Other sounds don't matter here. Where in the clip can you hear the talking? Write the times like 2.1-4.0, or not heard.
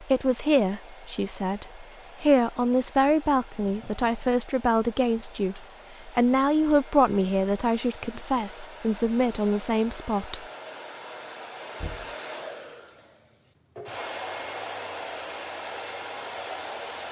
0.0-10.4.